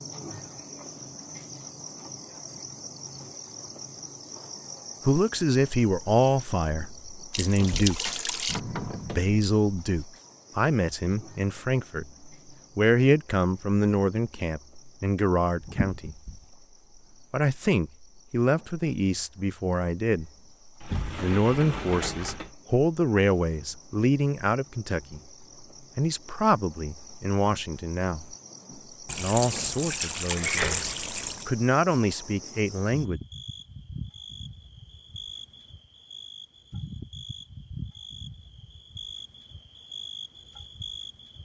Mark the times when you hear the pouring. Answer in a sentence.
The pouring can be heard from 7.3 to 8.6 s, from 15.6 to 16.4 s and from 29.1 to 31.5 s.